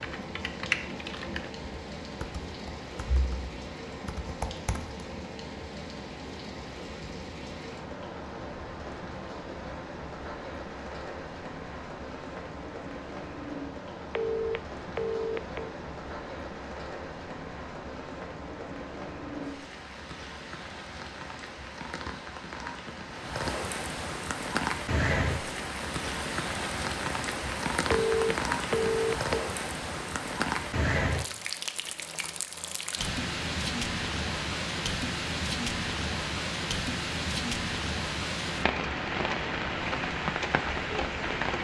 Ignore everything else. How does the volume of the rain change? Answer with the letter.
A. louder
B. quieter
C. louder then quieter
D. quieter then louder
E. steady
A.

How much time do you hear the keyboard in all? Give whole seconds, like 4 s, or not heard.
5 s.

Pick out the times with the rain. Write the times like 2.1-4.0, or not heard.
0.0-41.5.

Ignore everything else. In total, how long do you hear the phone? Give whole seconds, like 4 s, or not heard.
3 s.